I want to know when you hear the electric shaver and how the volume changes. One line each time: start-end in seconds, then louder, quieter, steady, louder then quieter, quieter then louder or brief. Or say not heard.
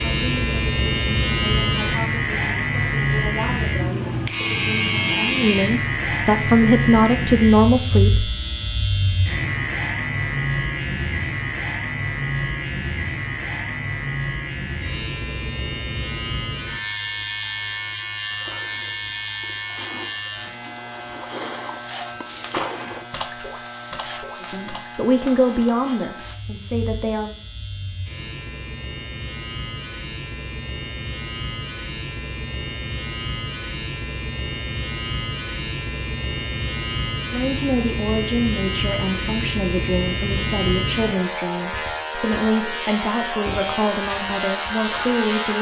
0.0-45.5 quieter then louder.